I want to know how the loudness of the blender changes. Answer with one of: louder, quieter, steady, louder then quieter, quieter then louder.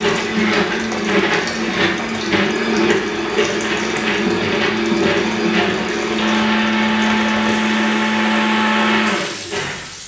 steady.